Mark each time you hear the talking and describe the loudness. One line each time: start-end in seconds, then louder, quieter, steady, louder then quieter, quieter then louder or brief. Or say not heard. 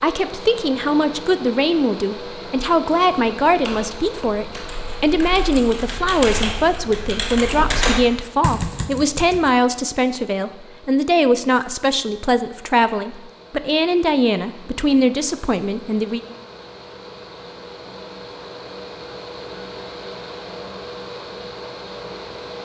0.0-16.2 steady.